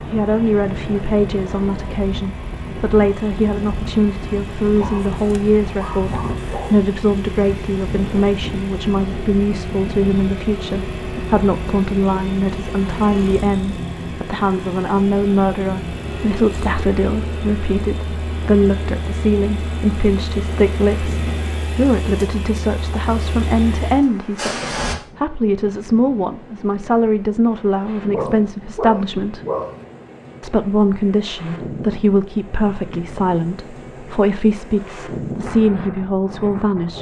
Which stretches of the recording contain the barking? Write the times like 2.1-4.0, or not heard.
4.8-6.8, 28.1-29.8.